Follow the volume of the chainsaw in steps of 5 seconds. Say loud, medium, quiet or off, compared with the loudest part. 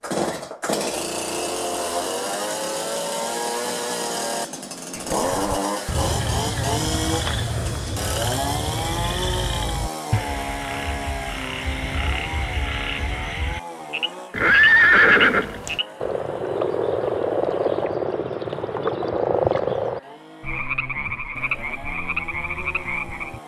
loud, loud, medium, quiet, quiet.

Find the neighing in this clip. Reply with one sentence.
You can hear the neighing from 14.3 to 15.8 s.